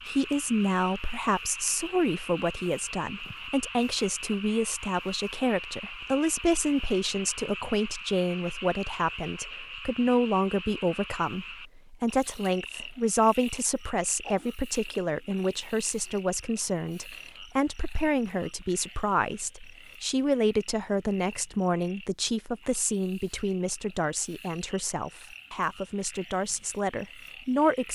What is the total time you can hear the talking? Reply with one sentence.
You can hear the talking for 28 seconds altogether.